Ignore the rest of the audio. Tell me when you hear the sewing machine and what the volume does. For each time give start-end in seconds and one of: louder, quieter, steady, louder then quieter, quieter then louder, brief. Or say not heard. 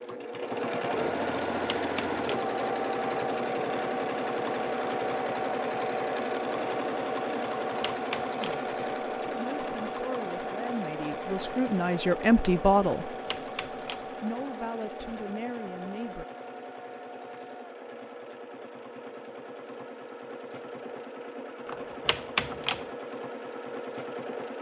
0.0-24.5 quieter.